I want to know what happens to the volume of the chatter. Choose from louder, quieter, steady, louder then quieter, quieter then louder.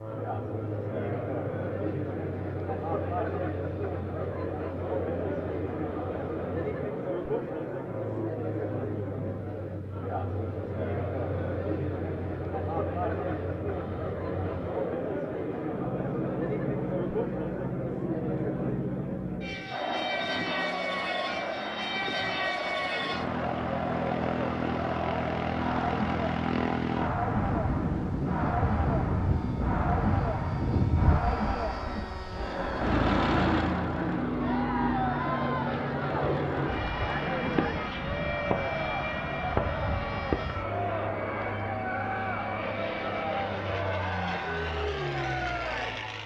steady.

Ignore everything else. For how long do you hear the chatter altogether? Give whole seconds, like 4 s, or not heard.
46 s.